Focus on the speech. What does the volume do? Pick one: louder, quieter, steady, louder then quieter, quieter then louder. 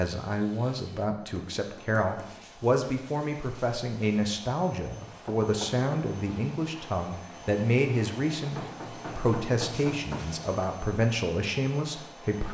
steady.